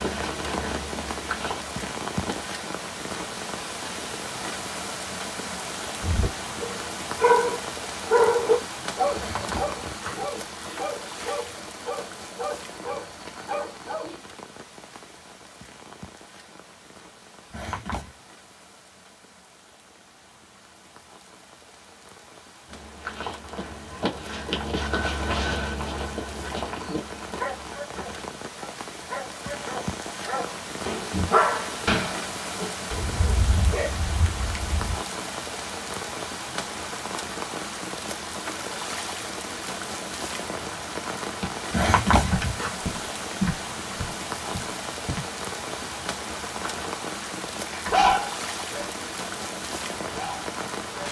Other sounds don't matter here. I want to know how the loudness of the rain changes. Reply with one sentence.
The loudness of the rain goes down, then up.